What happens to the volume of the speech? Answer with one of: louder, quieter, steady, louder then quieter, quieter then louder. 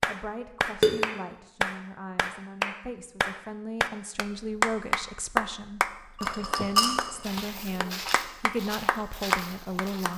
louder.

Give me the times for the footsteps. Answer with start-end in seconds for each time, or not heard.
7.2-10.1.